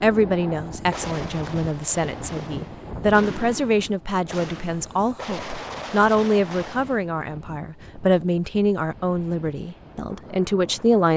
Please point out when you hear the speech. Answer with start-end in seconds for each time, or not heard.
0.0-11.1.